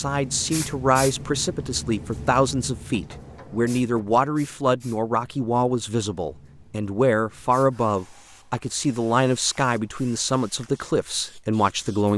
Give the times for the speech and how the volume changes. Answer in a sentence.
You can hear the speech from 0.0 to 12.1 s, at a steady volume.